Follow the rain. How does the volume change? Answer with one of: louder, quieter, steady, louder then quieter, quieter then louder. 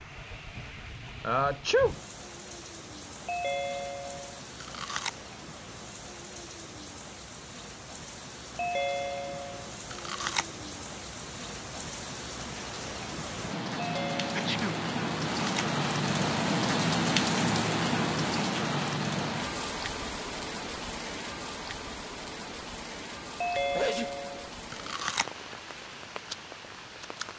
louder then quieter.